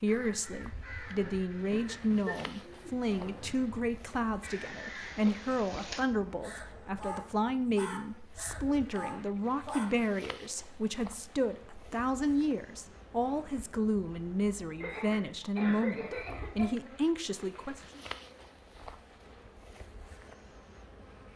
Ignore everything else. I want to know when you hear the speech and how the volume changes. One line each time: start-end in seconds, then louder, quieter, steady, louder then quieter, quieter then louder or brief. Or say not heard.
0.0-18.0 steady.